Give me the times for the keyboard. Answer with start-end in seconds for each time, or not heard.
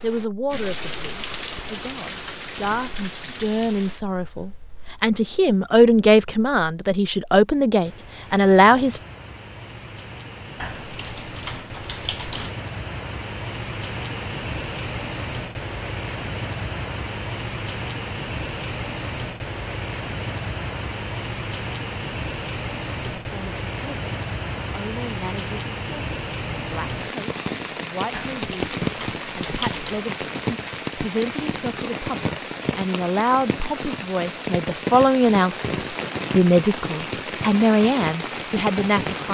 10.6-12.6, 28.1-30.1.